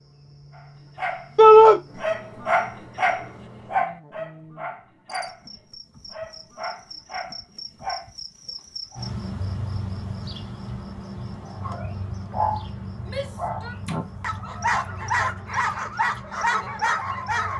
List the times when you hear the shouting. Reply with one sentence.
You can hear the shouting from 1.4 to 1.8 s and from 13.1 to 13.8 s.